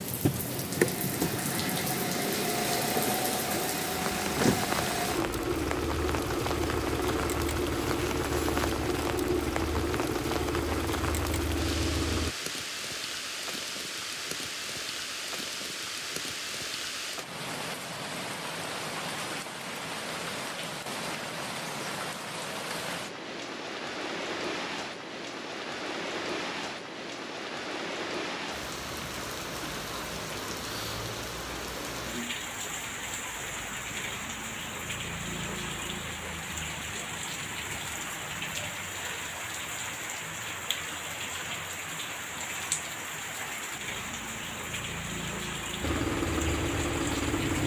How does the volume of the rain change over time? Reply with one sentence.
The volume of the rain stays about the same.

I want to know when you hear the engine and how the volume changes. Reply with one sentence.
The engine can be heard from 0.0 to 12.3 s, at a steady volume; and briefly from 45.8 to 47.6 s.